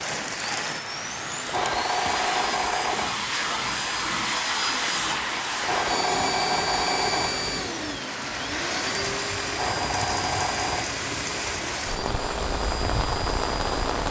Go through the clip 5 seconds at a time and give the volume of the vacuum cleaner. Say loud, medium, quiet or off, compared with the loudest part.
loud, loud, medium.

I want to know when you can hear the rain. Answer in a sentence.
The rain can be heard from 0.0 to 14.0 s.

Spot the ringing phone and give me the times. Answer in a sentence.
The ringing phone can be heard from 1.4 to 3.1 s, from 5.6 to 7.5 s and from 9.5 to 10.8 s.